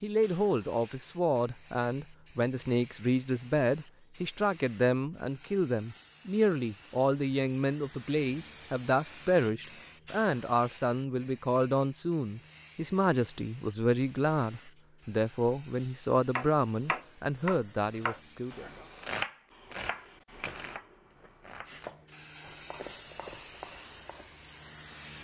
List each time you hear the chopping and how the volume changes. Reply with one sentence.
You can hear the chopping from 16.4 to 24.4 s, getting quieter.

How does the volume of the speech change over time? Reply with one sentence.
The volume of the speech stays about the same.